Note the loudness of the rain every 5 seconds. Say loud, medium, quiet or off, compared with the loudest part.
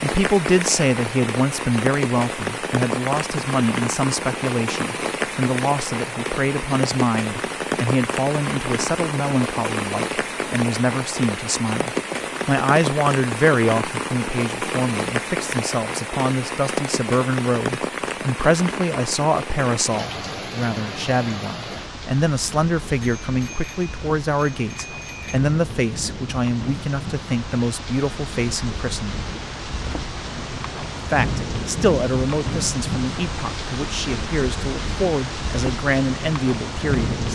loud, loud, loud, loud, medium, medium, loud, loud.